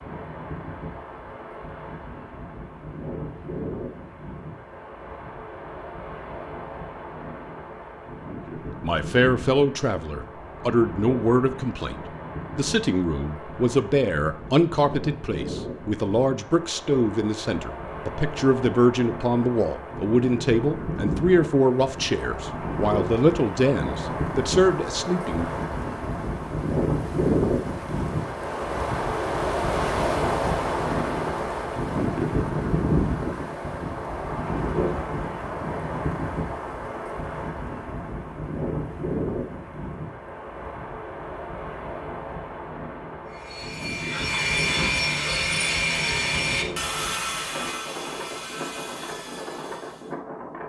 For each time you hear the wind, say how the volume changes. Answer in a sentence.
You can hear the wind from 0.0 to 50.6 s, getting louder then quieter.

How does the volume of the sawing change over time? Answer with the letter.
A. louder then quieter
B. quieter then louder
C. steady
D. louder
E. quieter
E.